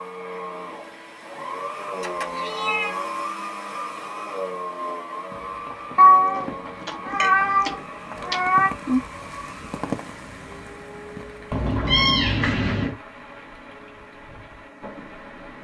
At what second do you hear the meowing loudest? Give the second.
6 s.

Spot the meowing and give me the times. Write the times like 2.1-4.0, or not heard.
2.0-3.0, 6.0-8.7, 11.5-12.9.